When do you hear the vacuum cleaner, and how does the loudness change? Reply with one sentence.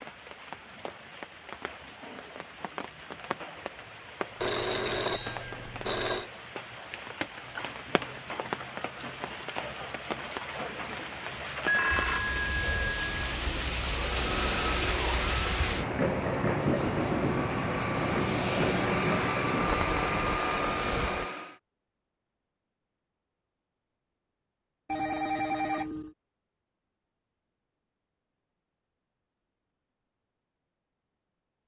The vacuum cleaner can be heard from 13.8 to 21.6 s, getting quieter then louder.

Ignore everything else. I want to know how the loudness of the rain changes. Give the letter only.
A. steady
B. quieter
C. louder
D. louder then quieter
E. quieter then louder
C.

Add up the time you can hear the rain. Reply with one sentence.
You can hear the rain for 21 seconds altogether.